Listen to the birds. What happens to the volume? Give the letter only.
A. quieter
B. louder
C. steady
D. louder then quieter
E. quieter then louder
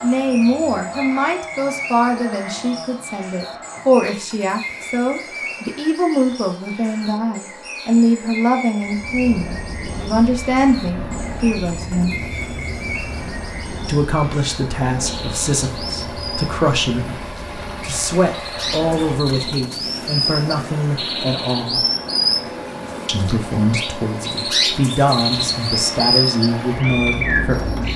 B.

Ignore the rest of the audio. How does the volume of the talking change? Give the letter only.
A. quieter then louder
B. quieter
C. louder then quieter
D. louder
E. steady
E.